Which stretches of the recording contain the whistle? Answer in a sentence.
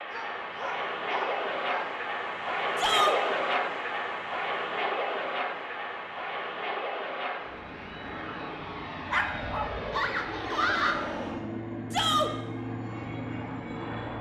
You can't hear the whistle here.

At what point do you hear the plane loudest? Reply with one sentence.
The loudest moment of the plane is at 3 seconds.